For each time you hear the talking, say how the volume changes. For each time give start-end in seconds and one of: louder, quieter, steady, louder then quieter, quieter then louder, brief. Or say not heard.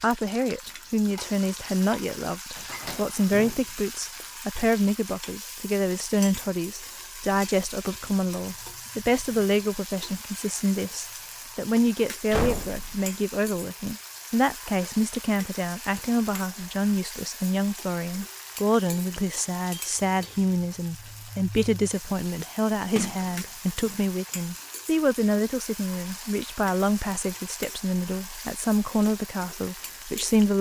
0.0-30.5 steady.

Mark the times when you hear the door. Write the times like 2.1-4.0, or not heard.
2.5-4.2, 12.3-13.0, 22.9-24.1.